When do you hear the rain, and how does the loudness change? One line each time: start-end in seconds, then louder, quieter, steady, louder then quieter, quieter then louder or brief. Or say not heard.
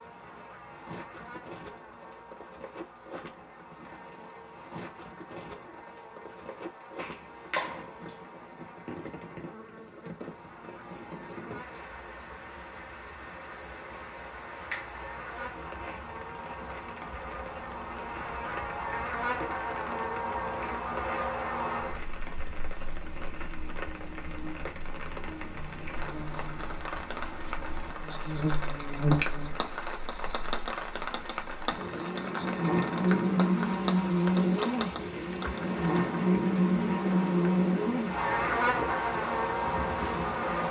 0.0-40.6 louder.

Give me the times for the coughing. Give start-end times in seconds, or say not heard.
not heard.